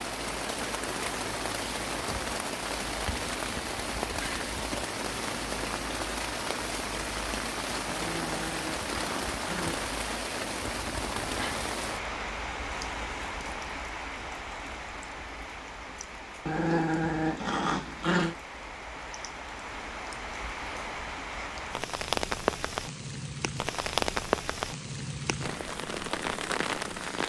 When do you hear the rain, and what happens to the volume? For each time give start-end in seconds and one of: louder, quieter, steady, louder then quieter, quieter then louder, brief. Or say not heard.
0.0-27.2 quieter then louder.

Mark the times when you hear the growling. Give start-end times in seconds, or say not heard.
7.8-9.8, 16.4-18.4.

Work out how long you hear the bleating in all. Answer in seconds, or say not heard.
not heard.